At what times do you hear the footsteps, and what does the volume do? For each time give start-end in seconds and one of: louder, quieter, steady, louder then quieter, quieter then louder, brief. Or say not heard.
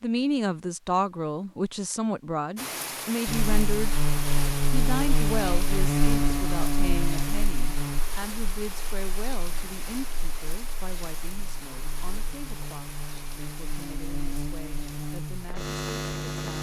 not heard.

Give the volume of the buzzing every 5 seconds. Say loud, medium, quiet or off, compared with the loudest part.
loud, loud, medium, loud.